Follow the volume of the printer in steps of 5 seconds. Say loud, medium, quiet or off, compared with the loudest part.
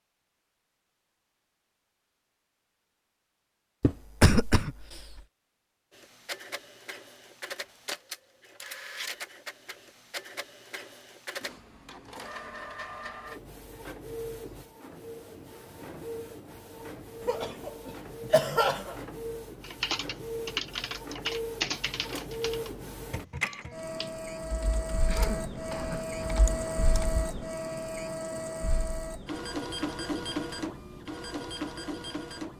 off, medium, medium, medium, loud, loud, loud.